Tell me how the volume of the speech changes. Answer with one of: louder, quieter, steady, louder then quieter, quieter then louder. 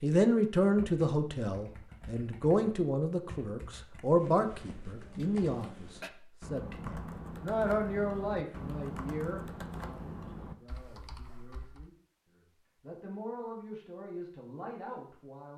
quieter.